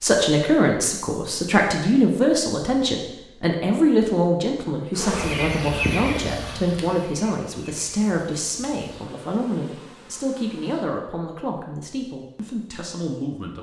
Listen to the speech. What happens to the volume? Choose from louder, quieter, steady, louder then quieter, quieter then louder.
quieter.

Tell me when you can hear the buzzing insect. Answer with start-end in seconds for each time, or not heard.
4.9-10.8.